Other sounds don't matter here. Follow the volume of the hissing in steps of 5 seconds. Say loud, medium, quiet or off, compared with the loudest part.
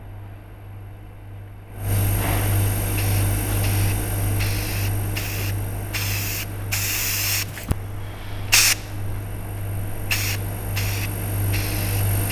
medium, loud, medium.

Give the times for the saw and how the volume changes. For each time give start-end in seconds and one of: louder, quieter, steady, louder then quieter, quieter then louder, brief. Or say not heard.
not heard.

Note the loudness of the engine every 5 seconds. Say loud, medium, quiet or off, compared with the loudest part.
loud, medium, loud.